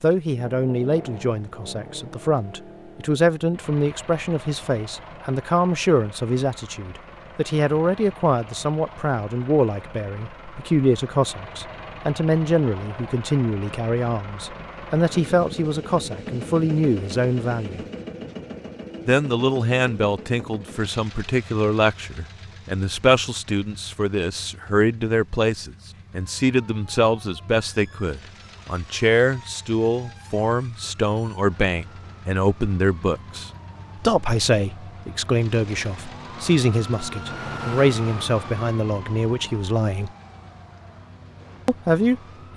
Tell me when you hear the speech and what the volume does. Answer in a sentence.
The speech can be heard from 0.0 to 17.9 s, at a steady volume; from 19.1 to 40.1 s, at a steady volume; and briefly from 41.6 to 42.5 s.